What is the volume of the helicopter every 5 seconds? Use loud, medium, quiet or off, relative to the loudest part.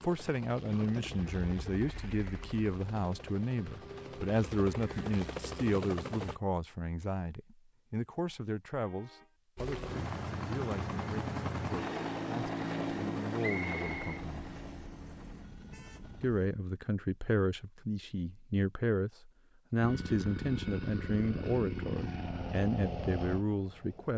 medium, loud, loud, quiet, loud.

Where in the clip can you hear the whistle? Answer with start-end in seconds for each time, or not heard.
13.4-14.2.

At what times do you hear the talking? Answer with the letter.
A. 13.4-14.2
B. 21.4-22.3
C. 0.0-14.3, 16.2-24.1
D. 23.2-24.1
C.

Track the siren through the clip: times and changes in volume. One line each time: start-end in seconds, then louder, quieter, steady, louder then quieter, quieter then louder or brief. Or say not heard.
not heard.